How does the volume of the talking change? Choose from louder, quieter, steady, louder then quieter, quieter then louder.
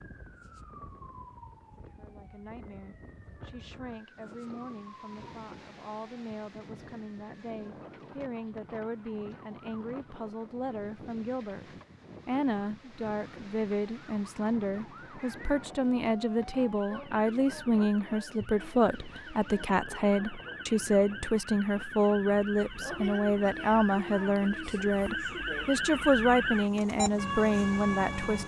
louder.